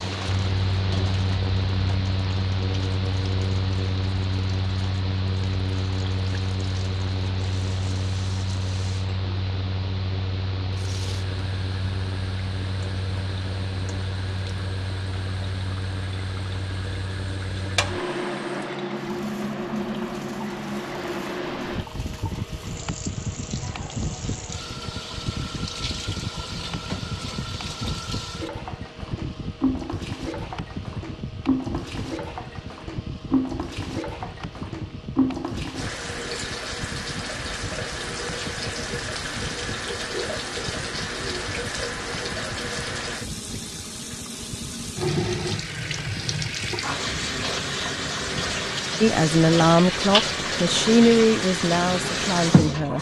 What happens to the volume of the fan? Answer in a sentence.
The volume of the fan goes down.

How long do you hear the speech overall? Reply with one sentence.
The speech can be heard for 4 seconds in total.